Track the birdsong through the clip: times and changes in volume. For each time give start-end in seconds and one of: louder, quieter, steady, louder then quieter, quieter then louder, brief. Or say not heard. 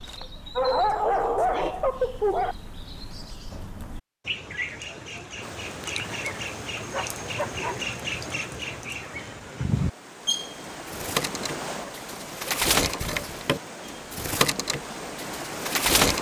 0.0-16.1 louder.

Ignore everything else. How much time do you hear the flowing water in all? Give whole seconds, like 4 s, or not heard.
11 s.